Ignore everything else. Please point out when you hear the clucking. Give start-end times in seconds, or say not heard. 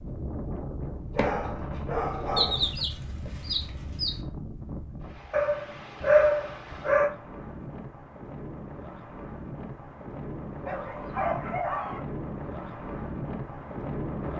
2.4-4.2.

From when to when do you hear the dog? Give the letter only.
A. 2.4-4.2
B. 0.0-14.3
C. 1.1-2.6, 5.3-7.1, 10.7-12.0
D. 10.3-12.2
C.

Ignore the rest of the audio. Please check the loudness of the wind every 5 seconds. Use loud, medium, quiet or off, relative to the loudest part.
loud, medium, loud.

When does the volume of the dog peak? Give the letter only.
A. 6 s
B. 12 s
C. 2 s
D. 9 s
A.